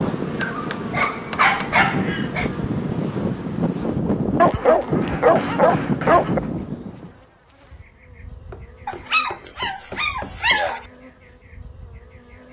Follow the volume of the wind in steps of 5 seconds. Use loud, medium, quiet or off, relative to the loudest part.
loud, loud, off.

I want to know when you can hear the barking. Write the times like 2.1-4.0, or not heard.
0.4-2.5, 4.3-6.4, 8.8-10.8.